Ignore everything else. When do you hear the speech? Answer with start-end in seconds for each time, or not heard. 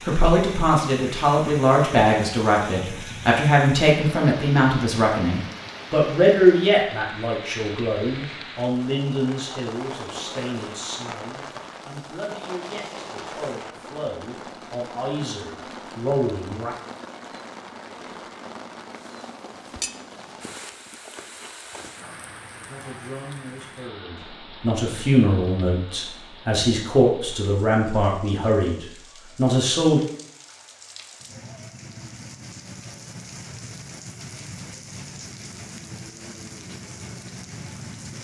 0.1-16.8, 22.0-30.0.